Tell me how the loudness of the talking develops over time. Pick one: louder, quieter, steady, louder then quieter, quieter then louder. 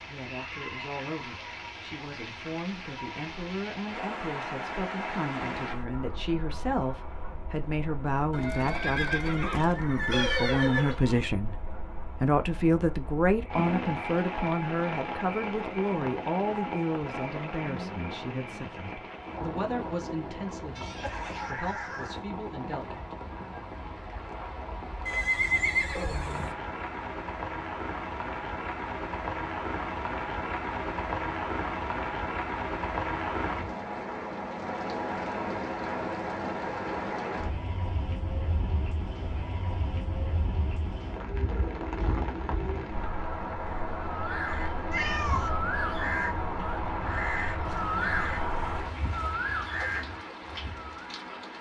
louder then quieter.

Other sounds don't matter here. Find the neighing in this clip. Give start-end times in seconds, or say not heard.
8.3-11.0, 25.1-26.6, 47.6-49.4.